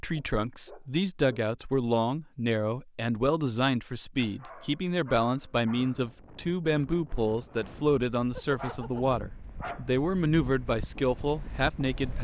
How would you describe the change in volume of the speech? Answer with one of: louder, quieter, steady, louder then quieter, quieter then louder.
steady.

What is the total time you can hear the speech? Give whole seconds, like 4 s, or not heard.
12 s.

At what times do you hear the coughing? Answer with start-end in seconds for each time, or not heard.
not heard.